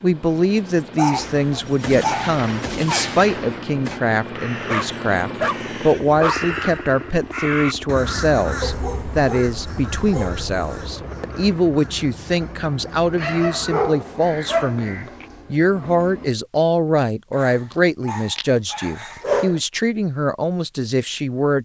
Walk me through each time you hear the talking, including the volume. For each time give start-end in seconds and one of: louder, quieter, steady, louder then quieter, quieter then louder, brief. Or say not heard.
0.0-21.6 steady.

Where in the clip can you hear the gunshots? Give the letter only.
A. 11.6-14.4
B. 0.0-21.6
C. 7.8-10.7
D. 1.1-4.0
D.